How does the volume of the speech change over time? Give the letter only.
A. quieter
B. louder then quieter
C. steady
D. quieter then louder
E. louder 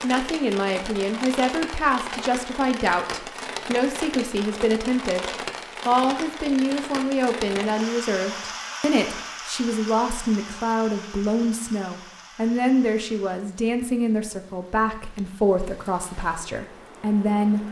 C.